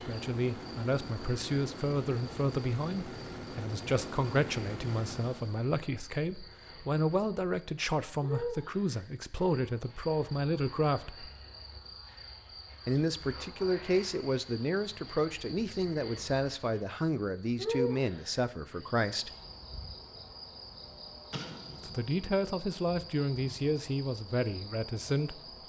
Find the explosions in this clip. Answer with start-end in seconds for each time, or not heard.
21.3-22.1.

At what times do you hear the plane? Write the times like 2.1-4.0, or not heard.
0.0-5.7.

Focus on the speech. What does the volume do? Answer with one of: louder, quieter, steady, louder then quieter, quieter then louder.
steady.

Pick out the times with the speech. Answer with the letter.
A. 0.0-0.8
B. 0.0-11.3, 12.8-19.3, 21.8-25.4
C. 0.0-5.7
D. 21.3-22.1
B.